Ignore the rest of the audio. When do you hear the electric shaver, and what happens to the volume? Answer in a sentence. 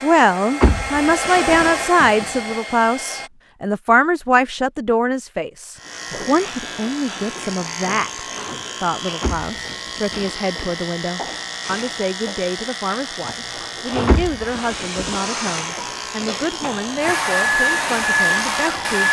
The electric shaver can be heard from 5.8 to 19.0 s, at a steady volume.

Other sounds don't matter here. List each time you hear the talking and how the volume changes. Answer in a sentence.
The talking can be heard from 0.0 to 19.0 s, getting quieter.